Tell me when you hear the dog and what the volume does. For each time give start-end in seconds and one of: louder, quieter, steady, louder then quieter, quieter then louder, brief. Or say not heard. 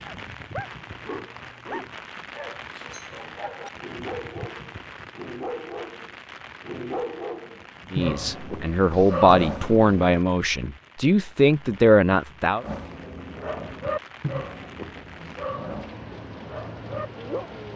0.1-10.2 louder
12.6-17.7 louder then quieter.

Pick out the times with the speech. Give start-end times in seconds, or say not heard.
7.9-12.7.